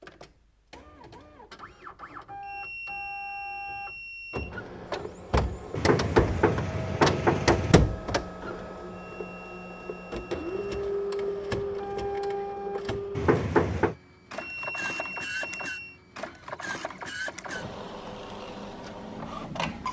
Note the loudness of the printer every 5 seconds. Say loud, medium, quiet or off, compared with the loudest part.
medium, loud, loud, medium.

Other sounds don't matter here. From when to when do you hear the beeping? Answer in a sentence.
The beeping can be heard from 2.4 to 4.5 s, from 8.9 to 10.8 s and from 14.3 to 16.0 s.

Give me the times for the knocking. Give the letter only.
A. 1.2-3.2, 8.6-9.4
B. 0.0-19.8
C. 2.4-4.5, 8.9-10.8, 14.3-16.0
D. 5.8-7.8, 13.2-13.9
D.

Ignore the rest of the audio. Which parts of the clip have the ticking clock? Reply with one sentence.
You can't hear the ticking clock here.